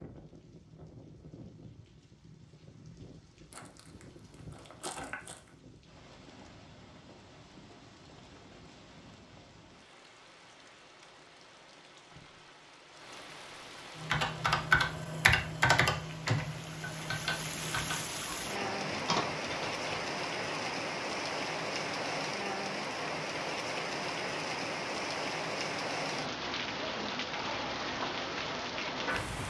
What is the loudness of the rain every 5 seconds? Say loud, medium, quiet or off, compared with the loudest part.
quiet, quiet, quiet, loud, loud, loud.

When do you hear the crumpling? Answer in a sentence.
The crumpling can be heard from 3.5 to 5.5 s.